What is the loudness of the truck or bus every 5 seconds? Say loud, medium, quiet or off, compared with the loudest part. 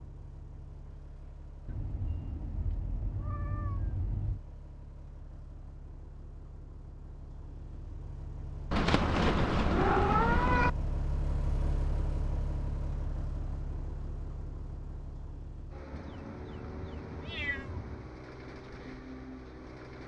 quiet, medium, loud, medium.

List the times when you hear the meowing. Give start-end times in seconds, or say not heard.
1.6-4.4, 8.7-10.7, 15.9-18.1.